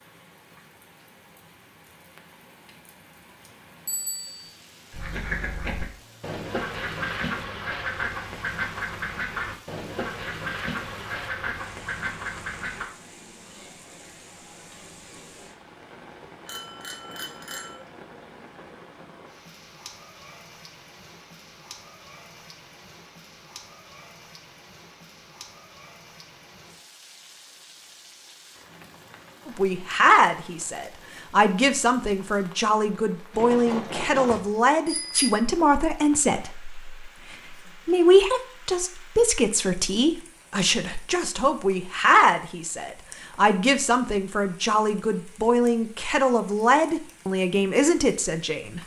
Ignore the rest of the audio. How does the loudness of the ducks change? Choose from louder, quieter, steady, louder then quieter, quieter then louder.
steady.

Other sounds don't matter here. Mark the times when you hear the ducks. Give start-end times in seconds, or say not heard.
4.9-12.8.